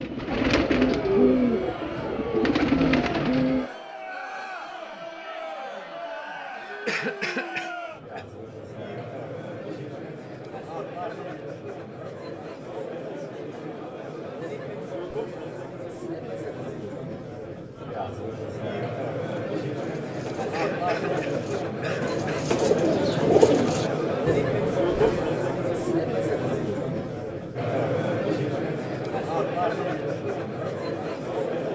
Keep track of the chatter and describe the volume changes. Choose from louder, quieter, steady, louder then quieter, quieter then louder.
louder.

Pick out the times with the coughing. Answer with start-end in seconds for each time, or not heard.
6.8-8.2, 20.5-22.5.